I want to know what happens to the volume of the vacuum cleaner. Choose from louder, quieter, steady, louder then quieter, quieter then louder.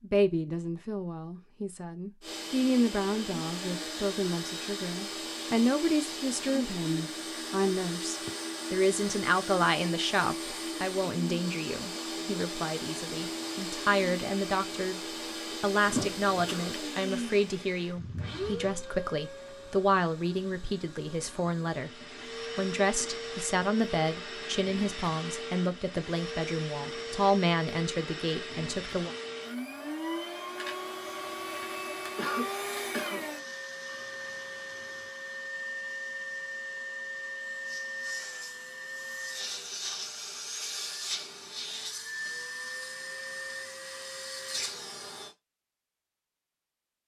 steady.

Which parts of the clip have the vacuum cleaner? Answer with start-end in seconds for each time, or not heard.
2.2-45.4.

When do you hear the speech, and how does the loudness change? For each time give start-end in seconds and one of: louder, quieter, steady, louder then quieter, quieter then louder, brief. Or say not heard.
0.0-29.1 steady.